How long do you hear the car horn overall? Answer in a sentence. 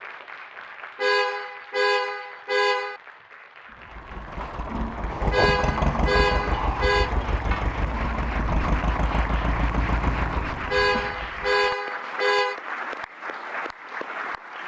The car horn can be heard for 6 seconds in total.